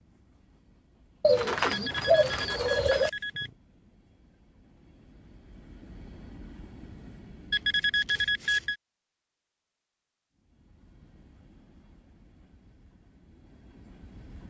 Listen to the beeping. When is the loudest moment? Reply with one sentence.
The volume of the beeping peaks at 8 seconds.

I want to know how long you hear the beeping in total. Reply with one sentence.
The beeping can be heard for 3 seconds in total.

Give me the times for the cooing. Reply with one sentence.
The cooing can be heard from 1.2 to 3.1 s.